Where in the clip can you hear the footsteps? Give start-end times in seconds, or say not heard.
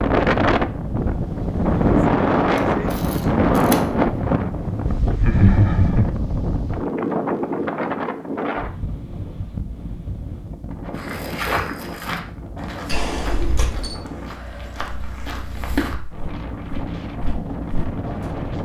10.9-17.9.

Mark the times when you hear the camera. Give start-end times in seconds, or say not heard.
2.9-3.8, 12.8-14.0.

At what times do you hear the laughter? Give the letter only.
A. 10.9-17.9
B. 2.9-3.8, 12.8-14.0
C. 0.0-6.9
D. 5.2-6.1
D.